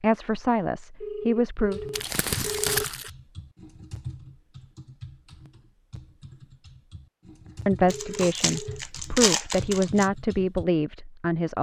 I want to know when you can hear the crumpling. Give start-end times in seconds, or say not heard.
1.9-3.1, 7.9-10.1.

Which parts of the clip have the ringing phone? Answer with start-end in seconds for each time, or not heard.
1.0-3.0, 7.5-8.8.